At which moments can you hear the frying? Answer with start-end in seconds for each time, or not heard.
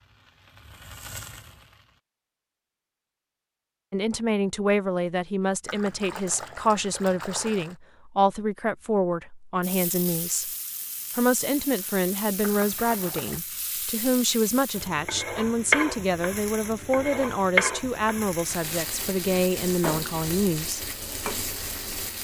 0.0-2.0, 9.6-22.1.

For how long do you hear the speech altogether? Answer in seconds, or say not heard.
16 s.